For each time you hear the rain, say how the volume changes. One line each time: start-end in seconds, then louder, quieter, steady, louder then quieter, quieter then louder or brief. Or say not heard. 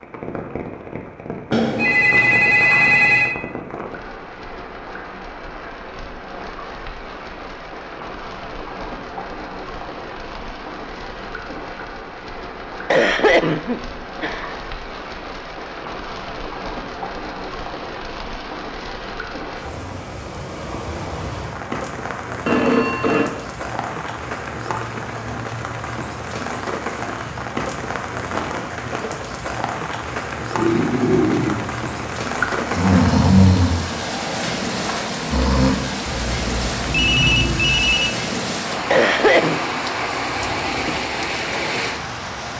0.0-42.5 louder.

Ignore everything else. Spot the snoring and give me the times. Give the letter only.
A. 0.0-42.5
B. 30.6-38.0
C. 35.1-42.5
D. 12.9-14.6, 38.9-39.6
B.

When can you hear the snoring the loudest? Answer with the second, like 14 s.
33 s.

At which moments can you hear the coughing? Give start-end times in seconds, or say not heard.
12.9-14.6, 38.9-39.6.